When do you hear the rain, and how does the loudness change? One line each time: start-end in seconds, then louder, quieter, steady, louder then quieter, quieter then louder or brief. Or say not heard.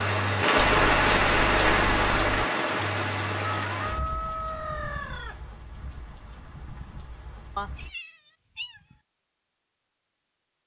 0.0-7.9 quieter.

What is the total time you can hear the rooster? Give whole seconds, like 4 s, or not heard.
2 s.